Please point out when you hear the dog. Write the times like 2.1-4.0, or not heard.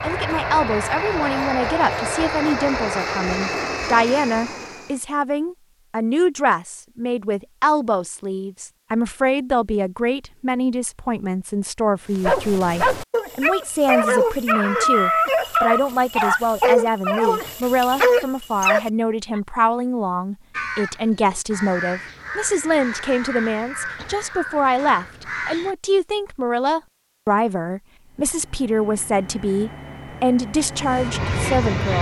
12.2-19.4.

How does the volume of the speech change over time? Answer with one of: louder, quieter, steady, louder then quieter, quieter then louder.
steady.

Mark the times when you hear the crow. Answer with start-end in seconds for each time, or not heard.
20.5-25.8.